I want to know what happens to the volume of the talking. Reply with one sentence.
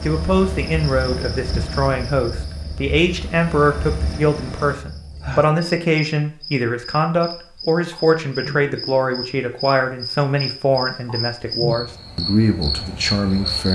The loudness of the talking stays about the same.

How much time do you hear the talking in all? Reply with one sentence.
The talking can be heard for 14 seconds in total.